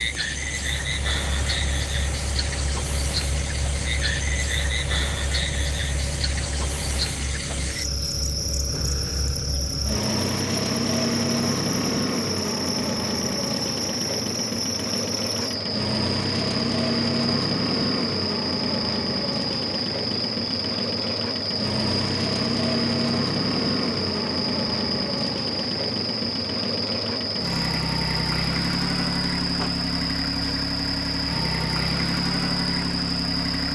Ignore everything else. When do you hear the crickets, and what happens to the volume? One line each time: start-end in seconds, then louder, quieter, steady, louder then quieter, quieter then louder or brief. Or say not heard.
0.0-33.6 steady.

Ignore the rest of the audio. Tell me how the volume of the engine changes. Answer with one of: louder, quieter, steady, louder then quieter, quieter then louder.
louder.